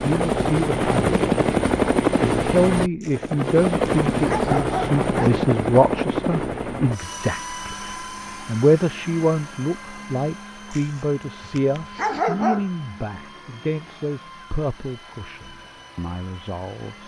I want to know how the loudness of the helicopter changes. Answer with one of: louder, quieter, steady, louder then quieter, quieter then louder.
quieter.